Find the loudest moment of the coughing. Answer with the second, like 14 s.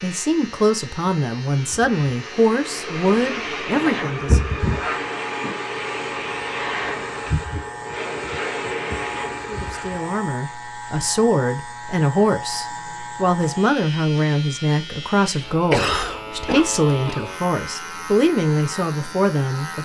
16 s.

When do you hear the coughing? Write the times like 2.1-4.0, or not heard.
15.7-17.2.